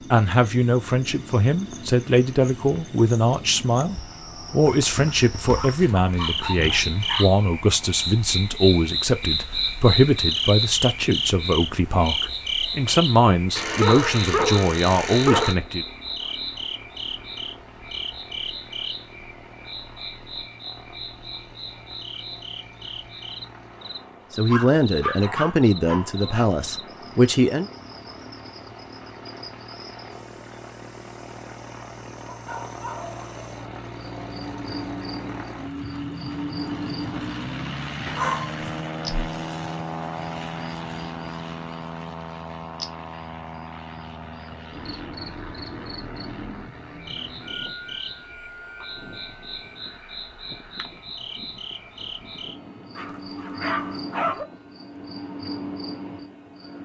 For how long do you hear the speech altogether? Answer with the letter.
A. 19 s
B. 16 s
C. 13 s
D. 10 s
A.